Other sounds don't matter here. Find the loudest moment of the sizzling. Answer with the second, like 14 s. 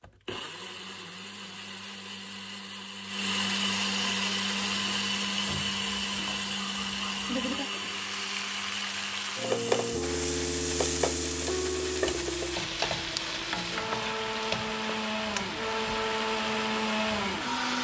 10 s.